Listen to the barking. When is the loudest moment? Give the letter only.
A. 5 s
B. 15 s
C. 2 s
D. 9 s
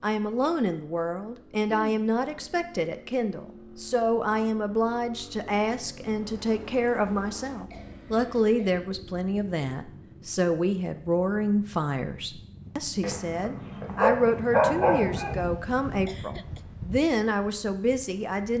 B.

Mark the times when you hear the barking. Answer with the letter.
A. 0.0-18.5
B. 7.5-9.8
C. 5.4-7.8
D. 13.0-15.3
D.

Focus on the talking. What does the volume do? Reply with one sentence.
The loudness of the talking stays about the same.